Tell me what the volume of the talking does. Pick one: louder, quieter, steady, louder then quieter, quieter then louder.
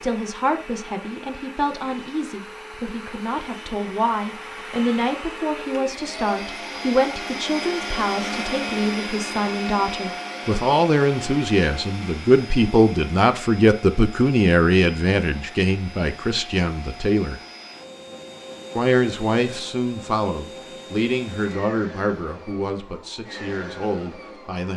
louder then quieter.